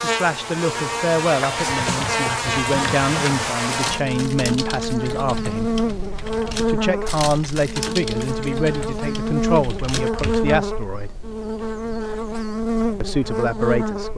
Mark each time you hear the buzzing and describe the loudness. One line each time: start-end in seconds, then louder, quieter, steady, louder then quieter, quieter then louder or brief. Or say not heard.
0.0-14.1 steady.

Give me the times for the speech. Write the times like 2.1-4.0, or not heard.
0.0-5.8, 6.7-11.2, 13.0-14.1.